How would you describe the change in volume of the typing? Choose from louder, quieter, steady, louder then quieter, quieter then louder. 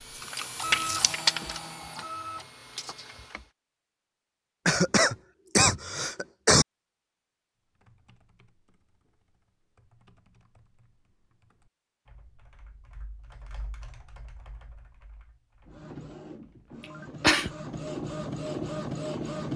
louder then quieter.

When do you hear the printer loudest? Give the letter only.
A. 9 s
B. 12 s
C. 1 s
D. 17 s
C.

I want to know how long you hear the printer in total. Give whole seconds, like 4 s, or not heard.
7 s.